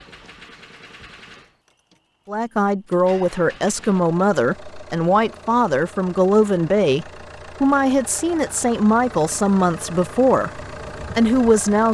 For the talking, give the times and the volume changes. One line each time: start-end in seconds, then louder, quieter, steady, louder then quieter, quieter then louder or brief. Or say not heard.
2.2-11.8 steady.